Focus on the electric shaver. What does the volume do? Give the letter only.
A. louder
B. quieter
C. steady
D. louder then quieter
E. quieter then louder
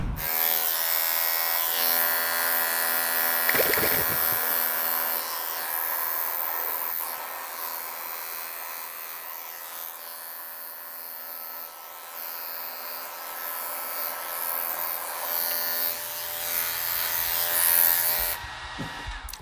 E.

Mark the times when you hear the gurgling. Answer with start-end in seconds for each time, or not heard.
3.5-4.5.